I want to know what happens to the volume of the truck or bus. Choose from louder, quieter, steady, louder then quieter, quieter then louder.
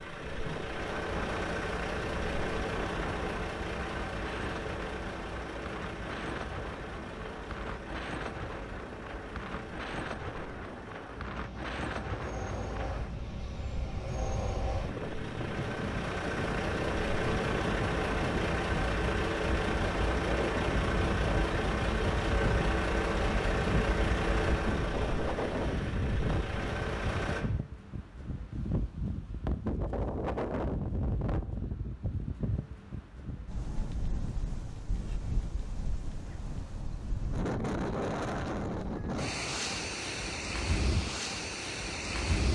quieter then louder.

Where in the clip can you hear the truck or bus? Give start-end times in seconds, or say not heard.
0.0-27.4.